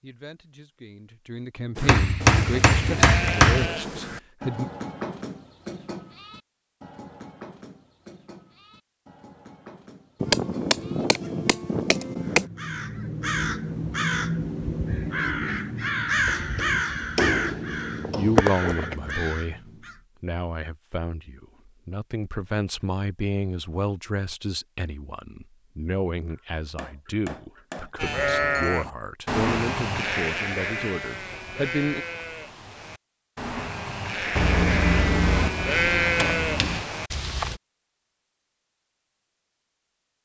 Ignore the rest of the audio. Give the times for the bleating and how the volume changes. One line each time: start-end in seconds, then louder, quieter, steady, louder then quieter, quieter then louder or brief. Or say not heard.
1.8-11.3 quieter
27.9-37.6 quieter then louder.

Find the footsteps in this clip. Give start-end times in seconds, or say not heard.
not heard.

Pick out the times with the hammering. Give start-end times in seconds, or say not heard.
1.9-3.7, 10.2-12.5, 16.2-18.4, 26.3-27.9, 34.4-36.9.